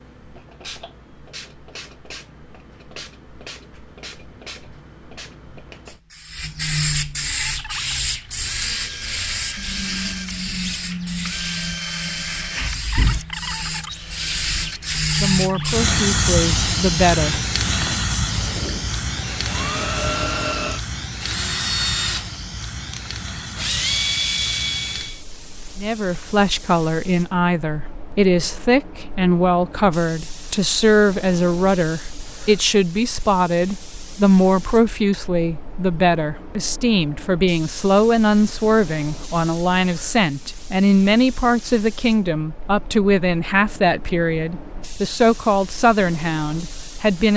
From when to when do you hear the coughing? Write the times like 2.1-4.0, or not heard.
not heard.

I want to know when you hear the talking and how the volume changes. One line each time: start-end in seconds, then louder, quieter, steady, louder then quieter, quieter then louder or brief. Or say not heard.
15.2-17.4 brief
25.8-47.3 steady.